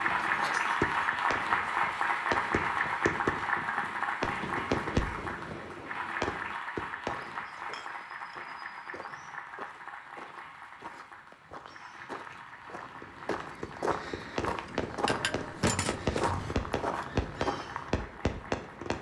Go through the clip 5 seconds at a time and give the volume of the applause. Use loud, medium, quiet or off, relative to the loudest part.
loud, medium, quiet, quiet.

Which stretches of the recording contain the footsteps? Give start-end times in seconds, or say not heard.
7.0-17.9.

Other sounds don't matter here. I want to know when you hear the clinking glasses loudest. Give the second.
16 s.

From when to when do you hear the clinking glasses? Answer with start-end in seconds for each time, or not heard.
0.2-0.9, 7.7-8.4, 15.1-16.6.